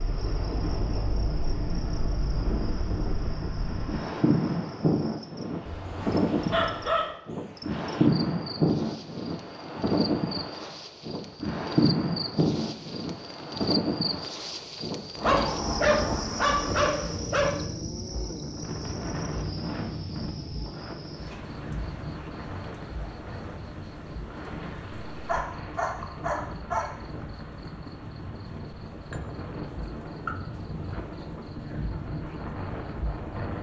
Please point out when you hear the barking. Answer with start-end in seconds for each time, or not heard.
5.7-7.1, 15.2-17.6, 25.2-26.9.